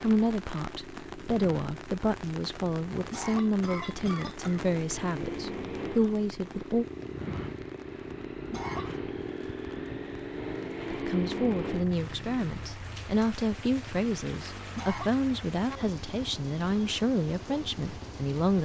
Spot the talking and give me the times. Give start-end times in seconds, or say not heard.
0.0-6.8, 10.9-18.6.